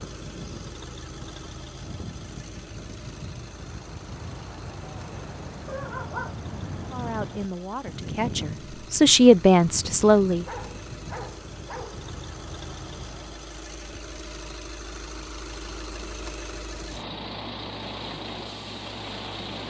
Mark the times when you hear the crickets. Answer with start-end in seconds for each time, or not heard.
not heard.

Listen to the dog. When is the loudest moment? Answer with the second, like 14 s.
6 s.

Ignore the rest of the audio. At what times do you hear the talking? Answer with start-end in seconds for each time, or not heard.
6.9-10.4.